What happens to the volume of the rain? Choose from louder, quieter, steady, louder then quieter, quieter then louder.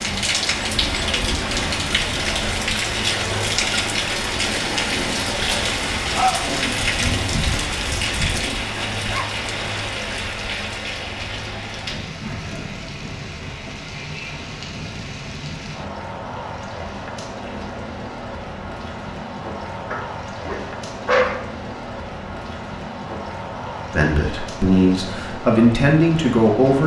quieter.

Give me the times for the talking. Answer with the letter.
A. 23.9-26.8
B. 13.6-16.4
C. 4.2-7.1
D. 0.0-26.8
A.